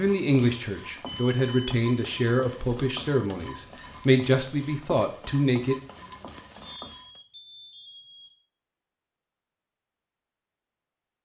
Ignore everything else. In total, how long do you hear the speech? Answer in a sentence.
The speech can be heard for 6 seconds in total.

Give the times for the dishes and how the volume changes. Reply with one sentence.
You can't hear the dishes here.